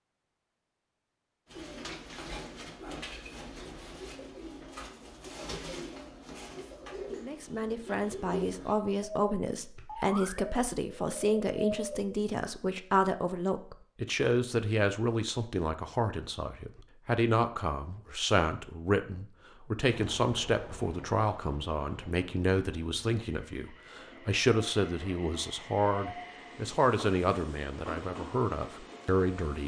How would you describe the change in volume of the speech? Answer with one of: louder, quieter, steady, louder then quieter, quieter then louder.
steady.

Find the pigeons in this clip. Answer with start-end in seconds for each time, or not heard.
1.4-12.2.